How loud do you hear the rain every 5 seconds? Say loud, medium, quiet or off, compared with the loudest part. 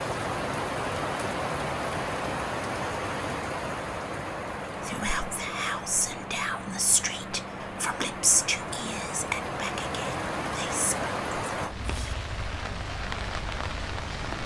loud, medium, loud.